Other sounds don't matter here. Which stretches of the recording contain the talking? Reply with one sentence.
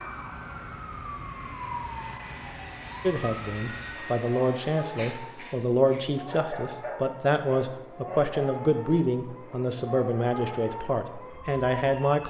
The talking can be heard from 3.0 to 12.2 s.